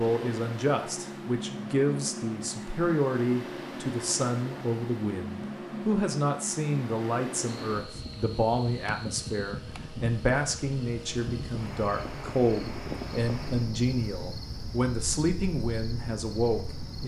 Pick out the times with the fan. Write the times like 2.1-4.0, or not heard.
0.0-13.8.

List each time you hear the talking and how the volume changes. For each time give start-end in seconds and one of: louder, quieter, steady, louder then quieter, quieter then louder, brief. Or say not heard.
0.0-17.0 steady.